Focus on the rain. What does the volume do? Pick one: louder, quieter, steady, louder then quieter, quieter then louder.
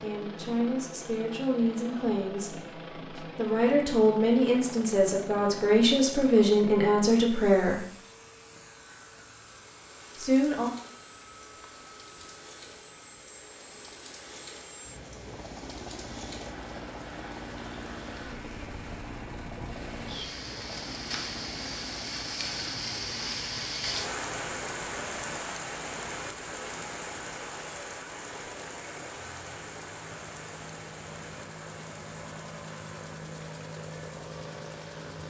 louder then quieter.